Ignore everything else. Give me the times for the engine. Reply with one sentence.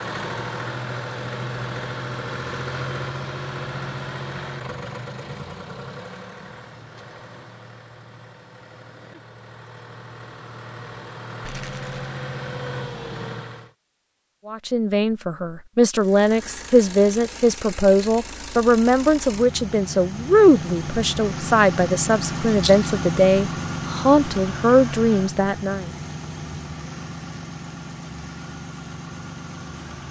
You can hear the engine from 0.0 to 13.7 s and from 15.9 to 30.0 s.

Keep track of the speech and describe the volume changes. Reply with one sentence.
The loudness of the speech stays about the same.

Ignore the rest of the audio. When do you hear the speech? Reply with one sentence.
The speech can be heard from 14.4 to 25.9 s.